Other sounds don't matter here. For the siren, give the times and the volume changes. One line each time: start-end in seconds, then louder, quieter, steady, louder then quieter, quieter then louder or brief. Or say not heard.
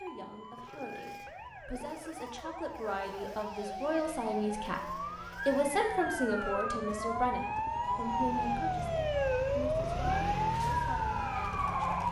0.0-12.0 louder.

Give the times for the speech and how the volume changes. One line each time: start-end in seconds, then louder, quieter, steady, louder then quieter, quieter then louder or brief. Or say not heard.
0.0-11.8 louder then quieter.